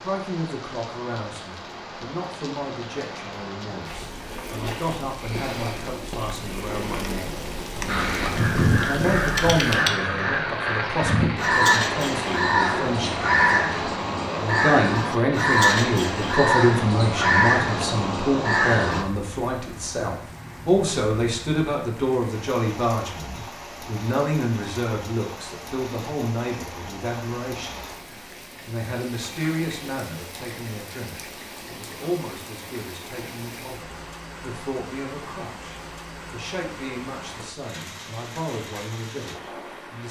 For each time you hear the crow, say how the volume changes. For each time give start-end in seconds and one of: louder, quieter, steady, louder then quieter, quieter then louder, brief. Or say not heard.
7.8-19.1 steady.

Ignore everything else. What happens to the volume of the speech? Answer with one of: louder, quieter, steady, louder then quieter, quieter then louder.
louder then quieter.